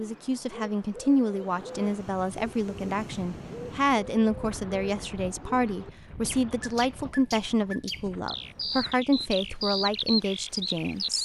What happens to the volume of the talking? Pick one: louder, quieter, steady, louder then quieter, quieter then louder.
steady.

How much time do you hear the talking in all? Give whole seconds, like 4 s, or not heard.
11 s.